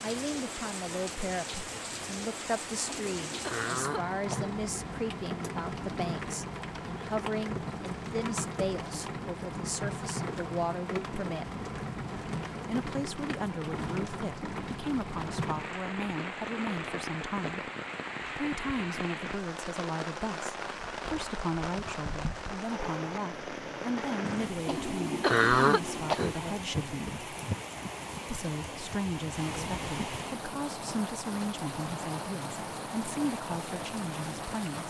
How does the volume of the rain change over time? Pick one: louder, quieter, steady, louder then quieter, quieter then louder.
steady.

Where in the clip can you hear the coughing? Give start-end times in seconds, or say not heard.
2.9-4.5, 24.6-26.4.